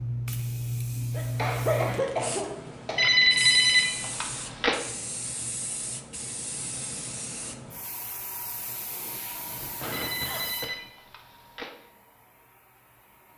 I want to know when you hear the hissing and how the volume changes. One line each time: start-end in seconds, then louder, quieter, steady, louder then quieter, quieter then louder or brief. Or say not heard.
0.0-13.3 quieter.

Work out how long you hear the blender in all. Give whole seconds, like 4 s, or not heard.
not heard.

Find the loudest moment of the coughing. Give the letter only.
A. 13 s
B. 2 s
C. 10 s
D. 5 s
B.